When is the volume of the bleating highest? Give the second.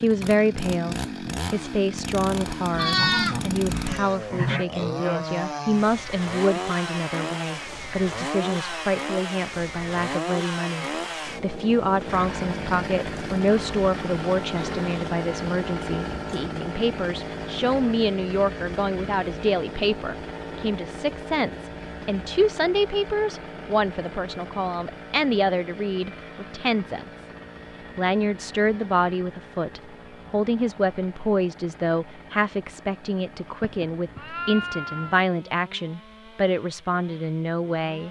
3 s.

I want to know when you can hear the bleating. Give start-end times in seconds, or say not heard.
2.7-4.7, 33.6-35.2.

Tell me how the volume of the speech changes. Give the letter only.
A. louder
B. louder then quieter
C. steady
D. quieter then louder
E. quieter
C.